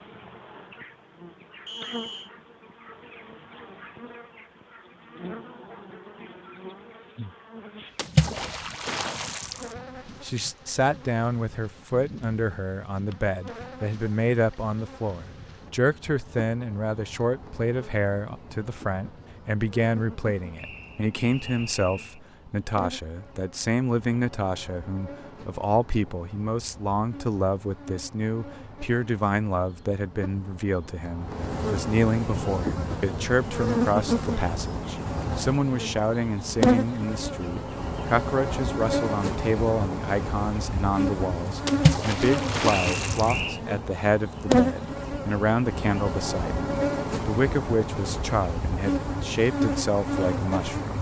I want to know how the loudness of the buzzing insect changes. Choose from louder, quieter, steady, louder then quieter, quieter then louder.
louder.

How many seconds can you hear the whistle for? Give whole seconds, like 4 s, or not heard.
3 s.